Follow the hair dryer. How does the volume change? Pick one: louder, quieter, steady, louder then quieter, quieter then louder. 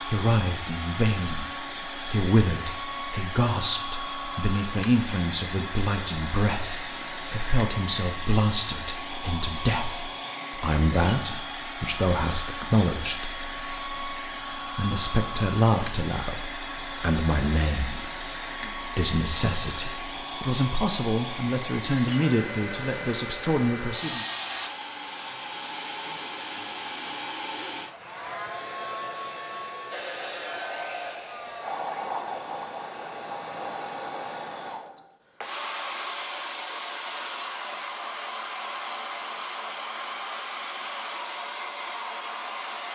steady.